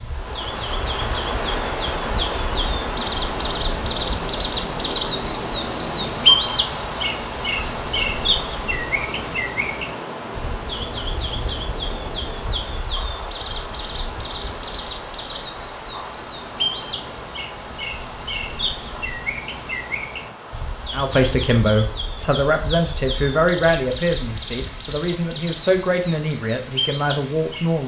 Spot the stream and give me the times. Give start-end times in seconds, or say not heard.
0.0-27.8.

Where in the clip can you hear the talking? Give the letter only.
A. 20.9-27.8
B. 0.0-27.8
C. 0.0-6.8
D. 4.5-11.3
A.